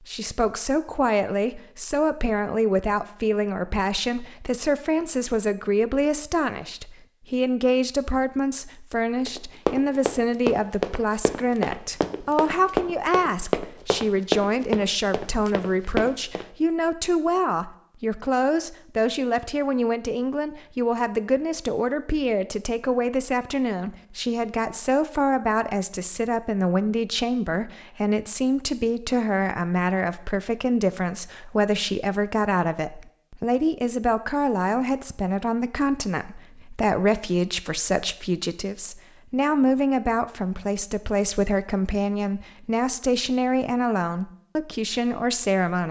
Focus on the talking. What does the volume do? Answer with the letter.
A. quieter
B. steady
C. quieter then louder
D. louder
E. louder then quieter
B.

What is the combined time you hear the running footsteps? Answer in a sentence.
The running footsteps can be heard for 7 seconds in total.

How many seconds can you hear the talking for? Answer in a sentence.
You can hear the talking for 46 seconds altogether.